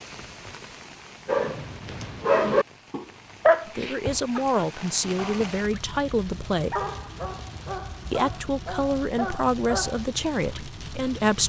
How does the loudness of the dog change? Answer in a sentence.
The volume of the dog goes down.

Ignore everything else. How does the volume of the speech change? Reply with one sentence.
The loudness of the speech stays about the same.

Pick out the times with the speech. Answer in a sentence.
The speech can be heard from 3.6 to 6.8 s and from 8.1 to 11.4 s.